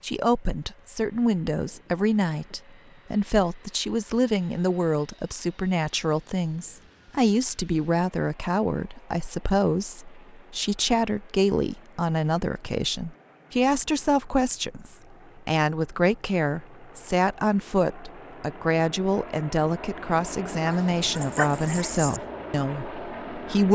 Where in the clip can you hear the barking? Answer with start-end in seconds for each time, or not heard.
20.6-22.2.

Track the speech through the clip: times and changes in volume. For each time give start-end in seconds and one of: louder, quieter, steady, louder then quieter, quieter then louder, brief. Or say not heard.
0.0-23.7 steady.